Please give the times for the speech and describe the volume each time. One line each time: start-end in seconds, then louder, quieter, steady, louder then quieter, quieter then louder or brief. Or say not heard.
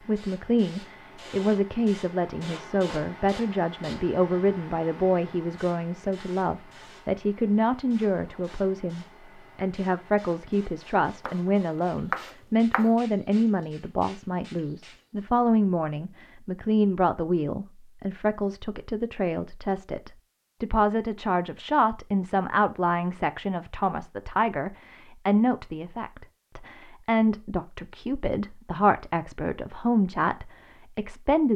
0.1-31.5 steady.